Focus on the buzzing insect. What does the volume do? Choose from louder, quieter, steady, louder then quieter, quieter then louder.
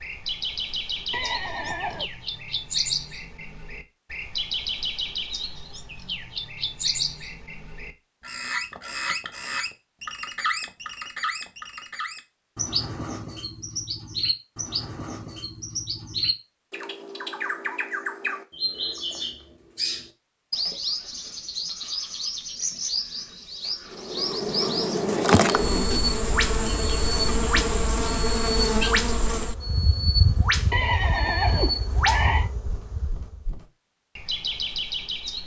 quieter.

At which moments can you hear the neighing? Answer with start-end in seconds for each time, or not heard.
1.1-2.1, 30.7-32.5.